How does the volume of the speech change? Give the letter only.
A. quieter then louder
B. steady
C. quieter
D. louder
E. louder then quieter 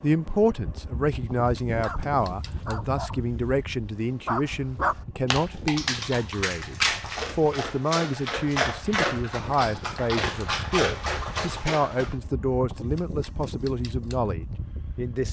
B.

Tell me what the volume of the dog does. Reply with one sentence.
The volume of the dog goes up.